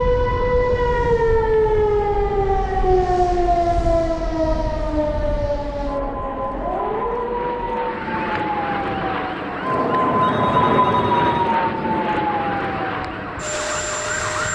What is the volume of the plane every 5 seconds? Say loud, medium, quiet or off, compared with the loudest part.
quiet, medium, loud.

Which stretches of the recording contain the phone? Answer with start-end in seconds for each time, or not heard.
10.1-11.5.